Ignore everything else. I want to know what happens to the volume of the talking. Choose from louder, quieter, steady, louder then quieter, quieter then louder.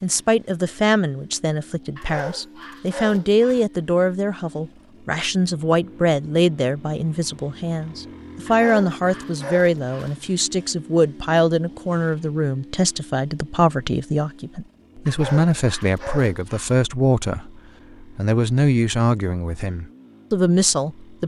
steady.